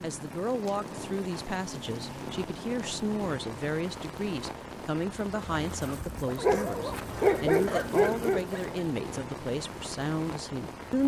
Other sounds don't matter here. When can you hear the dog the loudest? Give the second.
7 s.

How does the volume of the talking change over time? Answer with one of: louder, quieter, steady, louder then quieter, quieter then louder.
steady.